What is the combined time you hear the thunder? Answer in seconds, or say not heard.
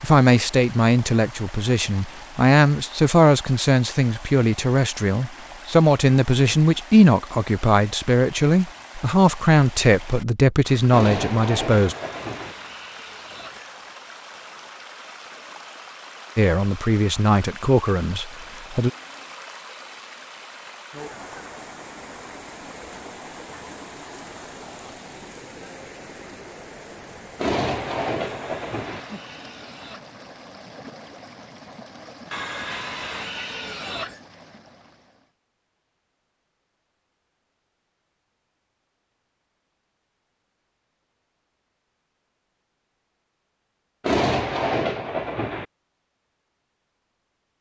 5 s.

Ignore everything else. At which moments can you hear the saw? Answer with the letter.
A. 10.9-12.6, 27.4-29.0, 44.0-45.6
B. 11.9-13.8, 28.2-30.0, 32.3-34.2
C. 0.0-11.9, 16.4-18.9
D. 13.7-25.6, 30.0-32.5
B.